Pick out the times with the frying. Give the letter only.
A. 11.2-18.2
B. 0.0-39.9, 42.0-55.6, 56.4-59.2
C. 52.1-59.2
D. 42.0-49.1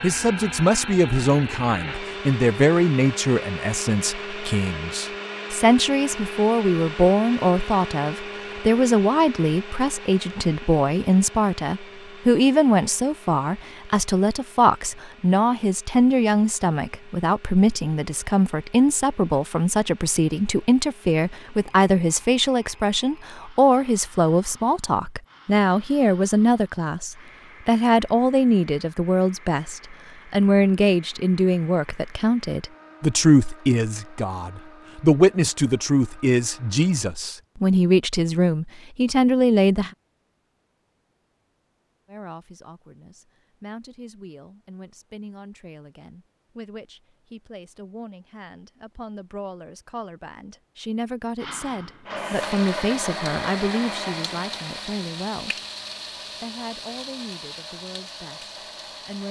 C.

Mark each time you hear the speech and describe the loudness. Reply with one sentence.
You can hear the speech from 0.0 to 39.9 s, at a steady volume; from 42.0 to 55.6 s, getting louder; and briefly from 56.4 to 59.2 s.